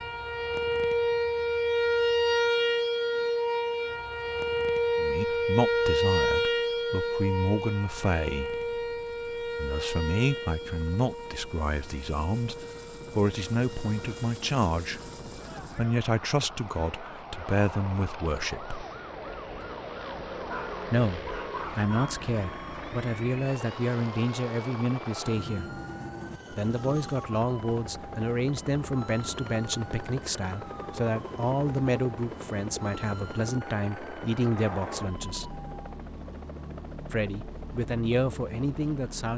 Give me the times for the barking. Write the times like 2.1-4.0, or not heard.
20.4-22.2.